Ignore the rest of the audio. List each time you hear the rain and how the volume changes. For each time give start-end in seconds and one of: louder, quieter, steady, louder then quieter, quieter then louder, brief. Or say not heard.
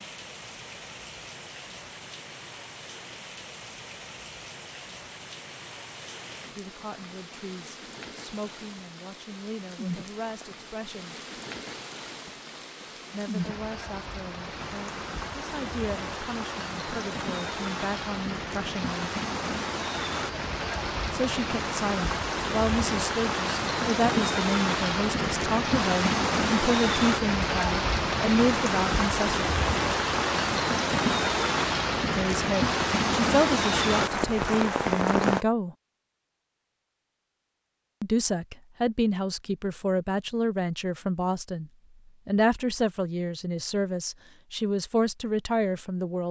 0.0-35.5 louder.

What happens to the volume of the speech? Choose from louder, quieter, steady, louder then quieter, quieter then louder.
louder.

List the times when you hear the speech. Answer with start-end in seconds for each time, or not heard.
6.5-11.2, 13.1-19.1, 21.1-29.4, 32.1-35.8, 38.0-46.2.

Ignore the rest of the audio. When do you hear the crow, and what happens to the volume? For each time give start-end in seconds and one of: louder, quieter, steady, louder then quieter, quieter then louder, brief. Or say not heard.
not heard.